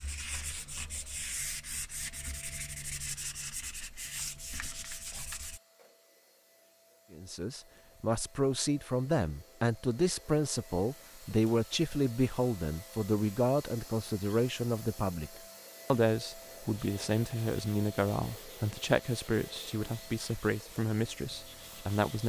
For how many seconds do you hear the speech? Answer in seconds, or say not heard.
15 s.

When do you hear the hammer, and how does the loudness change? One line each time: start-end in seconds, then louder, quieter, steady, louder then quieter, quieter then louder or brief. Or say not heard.
not heard.